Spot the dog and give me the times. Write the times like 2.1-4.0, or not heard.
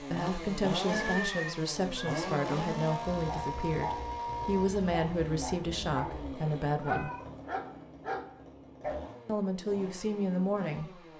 3.1-8.9.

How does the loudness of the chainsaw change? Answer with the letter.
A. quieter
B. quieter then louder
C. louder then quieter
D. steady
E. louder
A.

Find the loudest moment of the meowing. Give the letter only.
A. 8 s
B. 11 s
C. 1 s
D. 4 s
C.